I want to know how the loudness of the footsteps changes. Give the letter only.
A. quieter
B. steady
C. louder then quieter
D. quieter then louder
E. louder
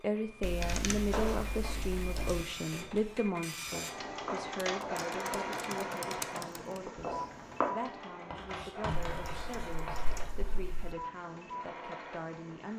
D.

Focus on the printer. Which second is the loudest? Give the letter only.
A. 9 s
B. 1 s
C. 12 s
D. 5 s
D.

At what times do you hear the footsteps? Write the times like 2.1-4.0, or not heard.
0.2-7.7.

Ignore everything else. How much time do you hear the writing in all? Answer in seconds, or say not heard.
2 s.